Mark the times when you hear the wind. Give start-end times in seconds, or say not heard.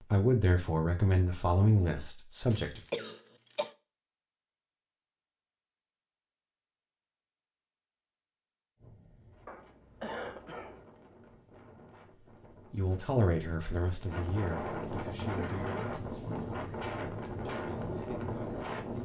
8.8-18.9.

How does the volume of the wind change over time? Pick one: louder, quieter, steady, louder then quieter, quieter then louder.
louder.